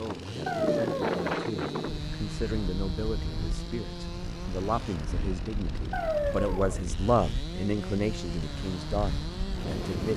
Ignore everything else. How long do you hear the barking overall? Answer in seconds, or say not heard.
2 s.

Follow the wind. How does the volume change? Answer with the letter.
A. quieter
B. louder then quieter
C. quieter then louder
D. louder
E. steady
A.